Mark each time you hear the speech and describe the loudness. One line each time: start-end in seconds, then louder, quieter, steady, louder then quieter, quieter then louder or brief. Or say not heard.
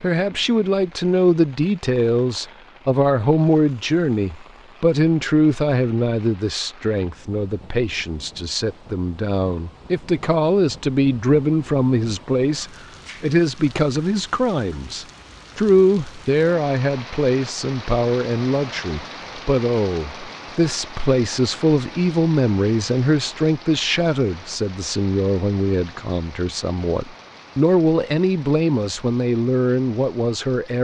0.0-30.7 steady.